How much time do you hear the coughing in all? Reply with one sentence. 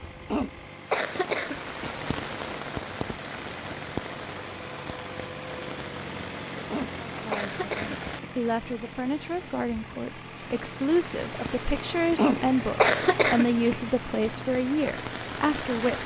You can hear the coughing for 5 seconds altogether.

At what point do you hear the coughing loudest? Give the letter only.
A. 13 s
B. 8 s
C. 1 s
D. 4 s
A.